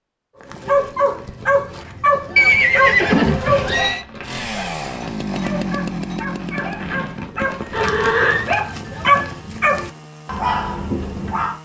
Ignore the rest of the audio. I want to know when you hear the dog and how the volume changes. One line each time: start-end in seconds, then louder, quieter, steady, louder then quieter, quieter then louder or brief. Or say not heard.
0.5-11.6 quieter then louder.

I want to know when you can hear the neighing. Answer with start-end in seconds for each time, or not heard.
2.4-4.0, 7.7-8.4.